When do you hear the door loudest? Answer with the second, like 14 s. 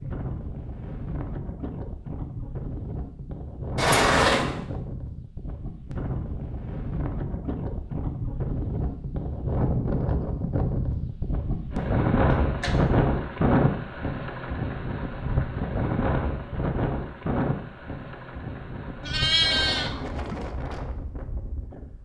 4 s.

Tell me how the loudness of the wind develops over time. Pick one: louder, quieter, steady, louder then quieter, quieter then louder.
louder then quieter.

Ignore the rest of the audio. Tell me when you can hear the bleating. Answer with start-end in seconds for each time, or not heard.
19.0-20.4.